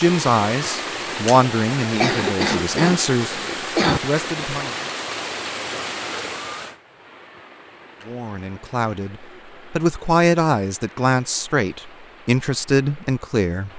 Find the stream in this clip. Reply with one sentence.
The stream can be heard from 0.0 to 13.7 s.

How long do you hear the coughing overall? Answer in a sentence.
You can hear the coughing for 2 seconds altogether.